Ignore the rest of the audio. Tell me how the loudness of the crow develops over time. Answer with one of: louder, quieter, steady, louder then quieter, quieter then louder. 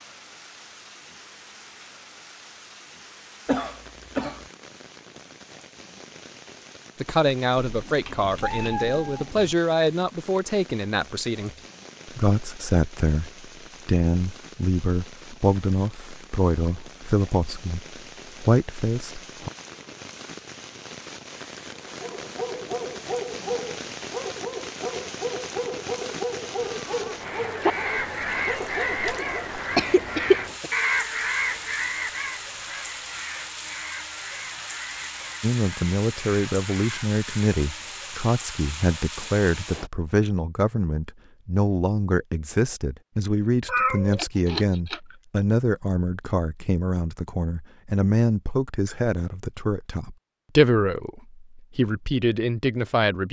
quieter.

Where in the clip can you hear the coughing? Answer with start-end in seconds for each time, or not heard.
3.5-4.5, 29.8-30.7.